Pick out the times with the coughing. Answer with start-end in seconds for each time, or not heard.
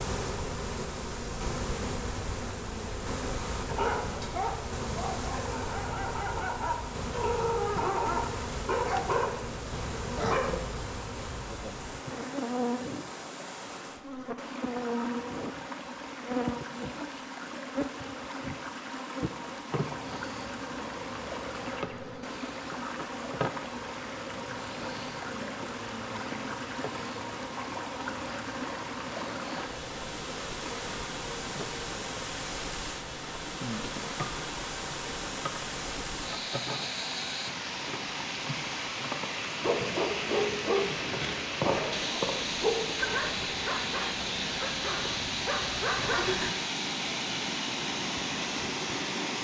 not heard.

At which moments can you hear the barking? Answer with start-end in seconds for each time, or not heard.
3.6-10.6, 39.6-46.5.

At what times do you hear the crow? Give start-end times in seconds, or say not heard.
not heard.